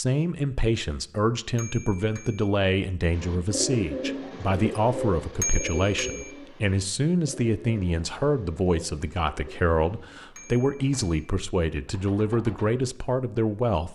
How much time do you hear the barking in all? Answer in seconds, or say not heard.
not heard.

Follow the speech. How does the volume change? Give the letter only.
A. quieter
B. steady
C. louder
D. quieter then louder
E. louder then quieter
B.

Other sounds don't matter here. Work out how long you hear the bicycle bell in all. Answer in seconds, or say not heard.
3 s.